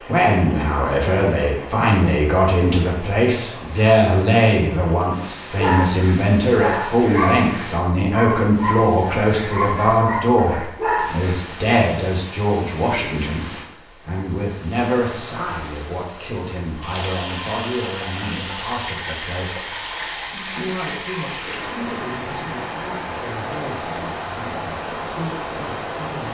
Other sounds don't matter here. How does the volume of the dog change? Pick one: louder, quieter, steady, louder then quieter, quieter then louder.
steady.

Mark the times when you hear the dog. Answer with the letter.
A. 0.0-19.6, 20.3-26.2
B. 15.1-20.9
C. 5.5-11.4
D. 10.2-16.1
C.